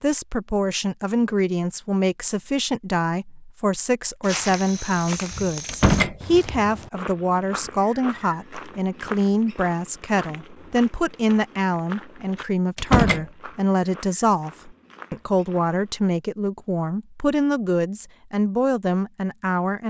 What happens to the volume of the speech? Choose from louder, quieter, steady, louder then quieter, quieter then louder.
steady.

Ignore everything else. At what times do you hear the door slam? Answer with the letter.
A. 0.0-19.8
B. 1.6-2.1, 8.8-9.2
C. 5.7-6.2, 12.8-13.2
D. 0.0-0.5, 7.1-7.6
C.